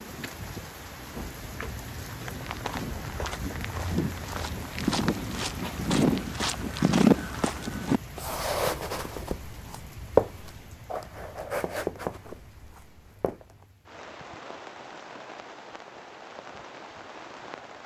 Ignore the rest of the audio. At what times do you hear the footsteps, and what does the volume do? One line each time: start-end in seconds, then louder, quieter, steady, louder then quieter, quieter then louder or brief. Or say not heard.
2.0-13.7 louder then quieter.